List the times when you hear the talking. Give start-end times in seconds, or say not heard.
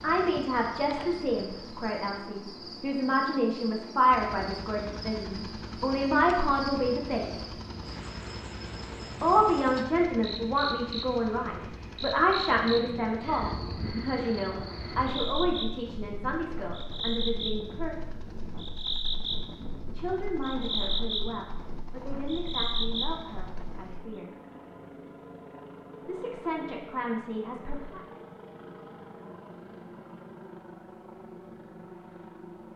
0.0-7.5, 9.2-17.9, 19.9-24.3, 26.1-28.0.